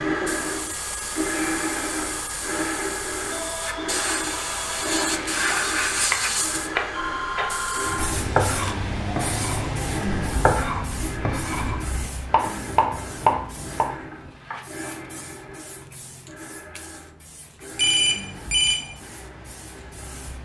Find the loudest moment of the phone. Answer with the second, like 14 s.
18 s.